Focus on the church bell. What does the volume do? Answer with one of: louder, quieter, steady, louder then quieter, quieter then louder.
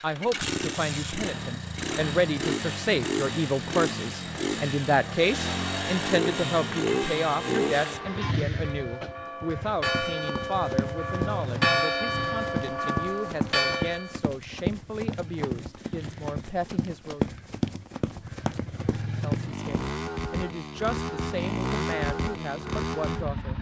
louder.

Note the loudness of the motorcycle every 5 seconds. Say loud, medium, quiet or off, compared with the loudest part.
loud, loud, medium, medium, loud.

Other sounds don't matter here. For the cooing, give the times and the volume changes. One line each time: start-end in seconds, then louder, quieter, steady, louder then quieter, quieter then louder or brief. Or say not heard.
not heard.